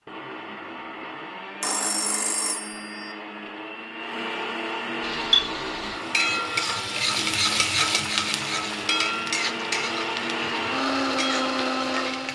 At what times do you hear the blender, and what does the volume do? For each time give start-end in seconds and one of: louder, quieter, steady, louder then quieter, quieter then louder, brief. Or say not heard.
0.1-12.3 louder.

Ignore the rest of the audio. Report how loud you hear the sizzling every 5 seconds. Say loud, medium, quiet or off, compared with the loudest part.
off, loud, medium.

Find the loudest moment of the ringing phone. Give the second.
2 s.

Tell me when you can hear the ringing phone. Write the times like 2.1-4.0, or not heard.
1.6-3.1.